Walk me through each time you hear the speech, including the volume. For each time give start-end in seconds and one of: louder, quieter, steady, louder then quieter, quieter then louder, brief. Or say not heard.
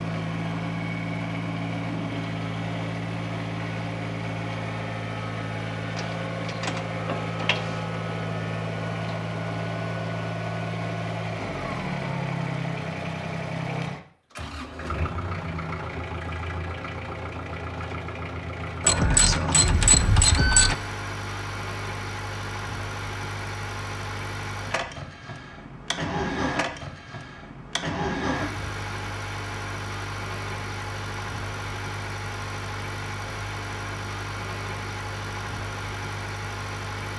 not heard.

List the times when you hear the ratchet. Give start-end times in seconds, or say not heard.
6.0-8.0, 18.8-20.8.